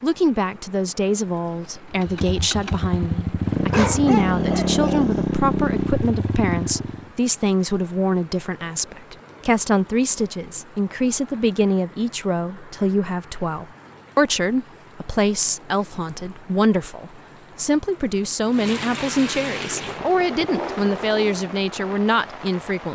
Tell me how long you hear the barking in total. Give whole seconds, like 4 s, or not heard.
2 s.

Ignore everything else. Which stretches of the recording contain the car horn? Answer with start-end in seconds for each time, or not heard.
not heard.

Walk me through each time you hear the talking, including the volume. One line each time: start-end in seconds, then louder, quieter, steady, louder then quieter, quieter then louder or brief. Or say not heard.
0.0-22.9 steady.